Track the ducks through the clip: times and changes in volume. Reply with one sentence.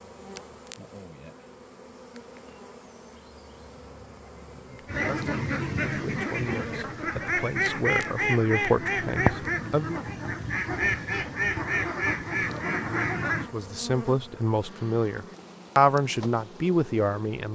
You can hear the ducks from 4.8 to 13.6 s, at a steady volume.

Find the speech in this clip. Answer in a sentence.
The speech can be heard from 4.7 to 10.0 s and from 13.5 to 17.5 s.